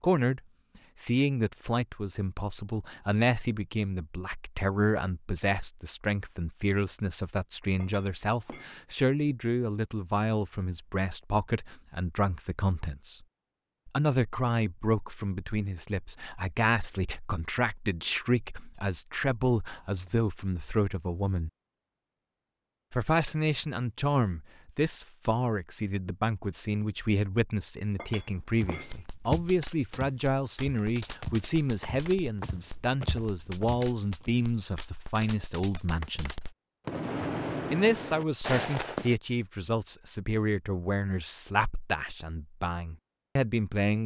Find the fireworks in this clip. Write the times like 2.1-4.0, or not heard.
28.7-39.1.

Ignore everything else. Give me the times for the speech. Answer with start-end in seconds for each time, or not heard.
0.0-0.4, 1.0-13.2, 13.8-21.5, 22.9-36.4, 37.7-44.0.